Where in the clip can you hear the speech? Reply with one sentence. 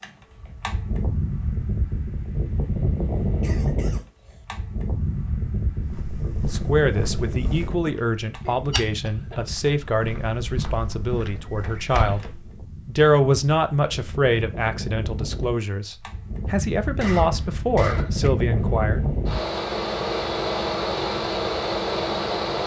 The speech can be heard from 6.5 to 19.0 s.